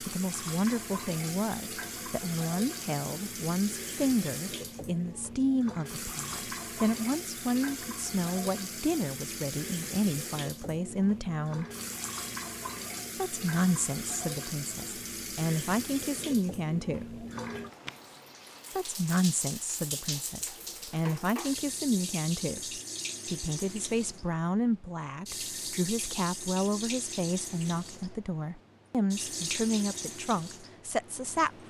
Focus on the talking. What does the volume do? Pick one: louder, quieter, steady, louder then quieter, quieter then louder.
steady.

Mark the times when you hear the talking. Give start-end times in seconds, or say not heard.
0.0-11.7, 13.2-17.2, 18.8-31.6.